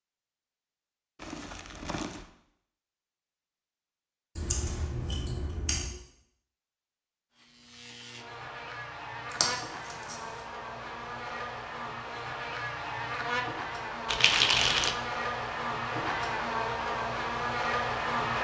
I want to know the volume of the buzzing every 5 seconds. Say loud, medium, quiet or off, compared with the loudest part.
off, medium, medium, loud.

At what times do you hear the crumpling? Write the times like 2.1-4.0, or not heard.
1.1-2.3, 14.1-14.9.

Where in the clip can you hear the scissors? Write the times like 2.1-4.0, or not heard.
4.3-5.9, 9.3-10.2.